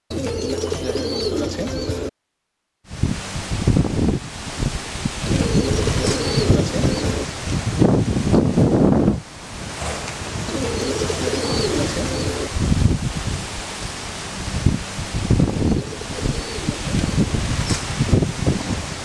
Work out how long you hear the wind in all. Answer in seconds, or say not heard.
16 s.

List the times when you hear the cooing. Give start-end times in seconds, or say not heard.
0.1-2.1, 5.2-7.2, 10.4-12.5, 15.6-17.3.